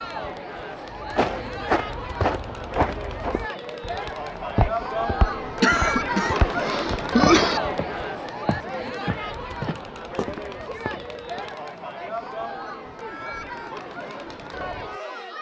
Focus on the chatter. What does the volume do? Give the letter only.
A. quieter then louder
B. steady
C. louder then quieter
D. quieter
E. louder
C.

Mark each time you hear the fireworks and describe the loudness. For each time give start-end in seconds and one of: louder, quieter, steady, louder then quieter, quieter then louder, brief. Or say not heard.
not heard.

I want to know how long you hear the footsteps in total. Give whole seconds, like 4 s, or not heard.
11 s.